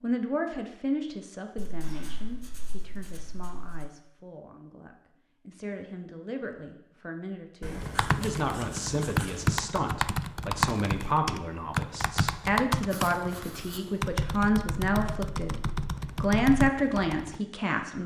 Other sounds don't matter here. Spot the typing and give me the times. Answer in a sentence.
The typing can be heard from 7.8 to 17.4 s.